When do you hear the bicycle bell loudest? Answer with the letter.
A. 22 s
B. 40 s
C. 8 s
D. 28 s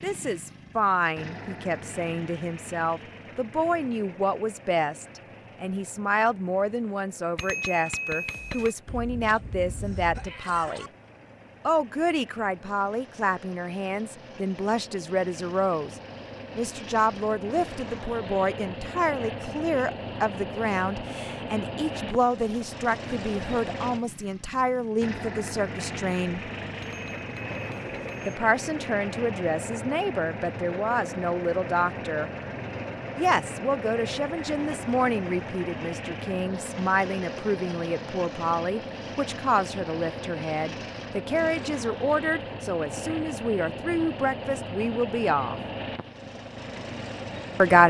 C.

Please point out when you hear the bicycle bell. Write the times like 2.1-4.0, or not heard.
7.3-8.8, 26.8-28.4.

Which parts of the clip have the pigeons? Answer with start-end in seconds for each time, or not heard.
not heard.